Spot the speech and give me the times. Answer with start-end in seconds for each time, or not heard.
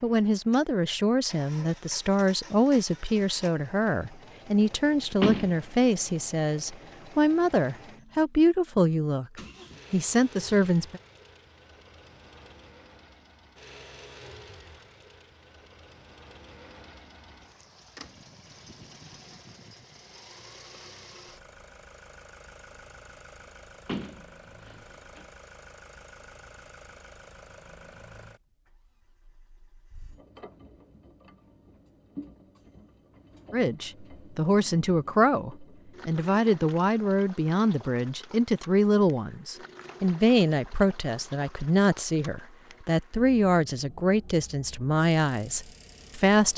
0.0-9.2, 9.9-11.0, 33.5-46.5.